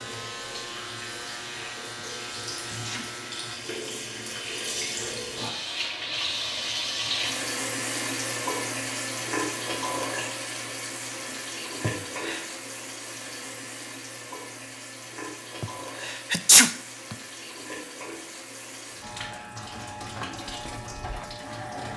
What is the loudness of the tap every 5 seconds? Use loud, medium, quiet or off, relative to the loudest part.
medium, loud, medium, medium, medium.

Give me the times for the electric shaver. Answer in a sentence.
The electric shaver can be heard from 0.0 to 3.6 s and from 19.0 to 21.9 s.